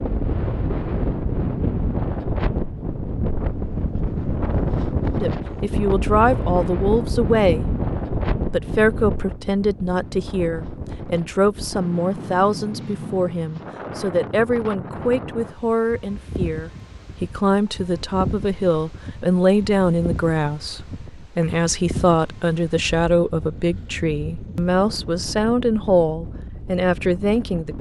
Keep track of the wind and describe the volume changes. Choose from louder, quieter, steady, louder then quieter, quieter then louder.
quieter.